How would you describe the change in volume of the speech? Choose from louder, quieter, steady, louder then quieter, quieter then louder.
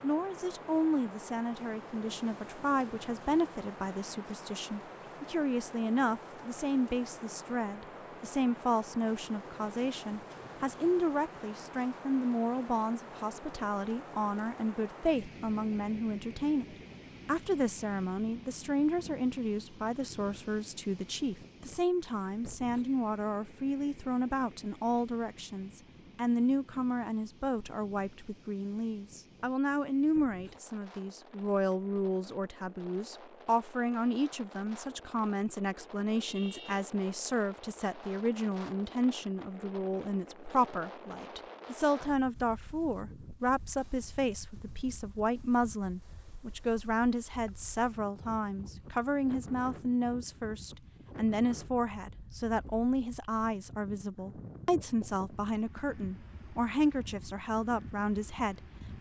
steady.